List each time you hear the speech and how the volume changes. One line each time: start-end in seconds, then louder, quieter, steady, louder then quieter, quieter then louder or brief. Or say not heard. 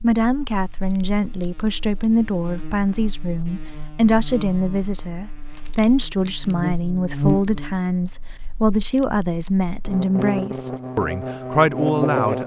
0.0-12.4 steady.